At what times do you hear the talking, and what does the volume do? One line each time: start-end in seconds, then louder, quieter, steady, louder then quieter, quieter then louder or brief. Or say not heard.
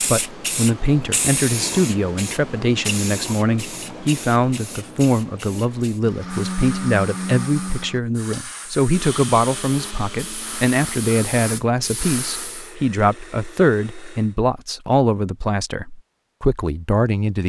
0.0-17.4 steady.